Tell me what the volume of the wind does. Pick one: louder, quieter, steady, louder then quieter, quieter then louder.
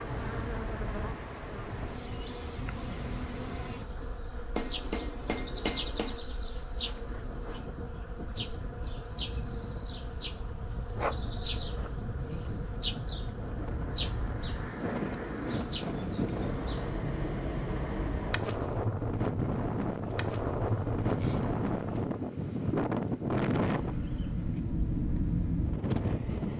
louder.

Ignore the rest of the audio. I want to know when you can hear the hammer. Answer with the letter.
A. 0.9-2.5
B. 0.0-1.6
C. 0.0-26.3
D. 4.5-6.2
D.